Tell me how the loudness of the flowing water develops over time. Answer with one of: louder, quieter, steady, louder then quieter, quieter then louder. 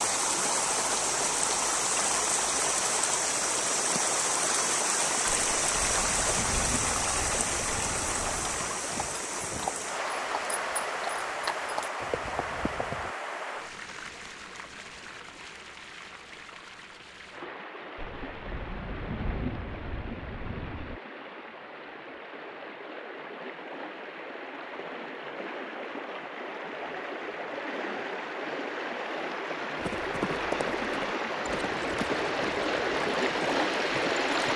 quieter then louder.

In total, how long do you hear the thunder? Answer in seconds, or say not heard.
6 s.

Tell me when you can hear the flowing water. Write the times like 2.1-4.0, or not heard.
0.0-34.5.